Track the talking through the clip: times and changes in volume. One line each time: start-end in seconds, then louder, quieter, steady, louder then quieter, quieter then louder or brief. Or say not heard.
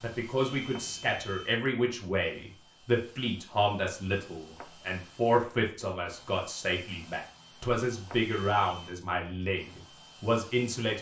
0.0-10.9 steady.